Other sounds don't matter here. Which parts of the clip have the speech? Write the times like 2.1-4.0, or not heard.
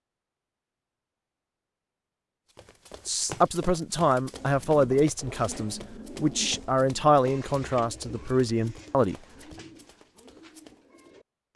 3.0-9.2.